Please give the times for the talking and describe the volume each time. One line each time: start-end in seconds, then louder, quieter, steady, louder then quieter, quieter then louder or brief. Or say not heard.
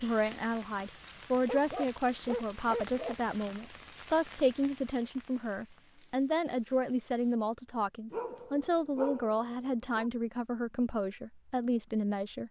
0.0-12.4 steady.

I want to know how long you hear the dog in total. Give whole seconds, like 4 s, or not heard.
4 s.